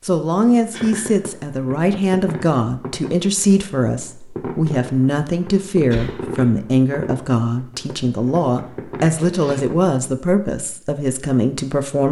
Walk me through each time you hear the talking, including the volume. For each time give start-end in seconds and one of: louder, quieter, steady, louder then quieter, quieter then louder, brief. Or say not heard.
0.0-12.0 steady.